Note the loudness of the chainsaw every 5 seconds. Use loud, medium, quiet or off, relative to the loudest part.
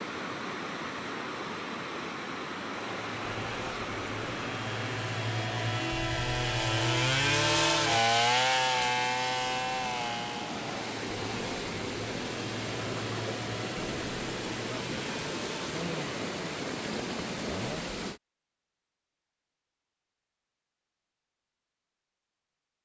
quiet, loud, quiet, quiet, off.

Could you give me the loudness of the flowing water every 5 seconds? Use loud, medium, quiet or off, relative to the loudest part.
loud, medium, loud, loud, off.